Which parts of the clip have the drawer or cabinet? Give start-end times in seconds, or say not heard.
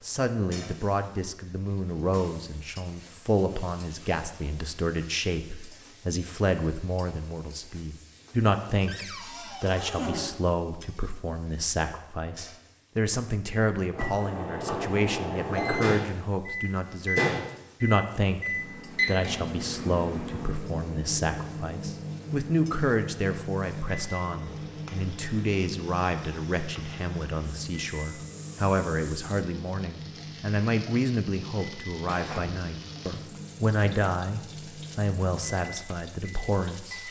8.8-10.3, 32.0-32.7.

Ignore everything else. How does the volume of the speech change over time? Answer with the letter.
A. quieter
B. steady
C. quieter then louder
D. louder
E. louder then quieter
B.